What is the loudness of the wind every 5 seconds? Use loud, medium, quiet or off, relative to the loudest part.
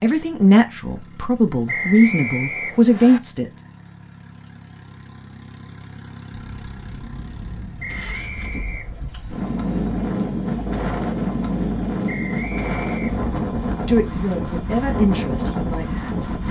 off, medium, loud, loud.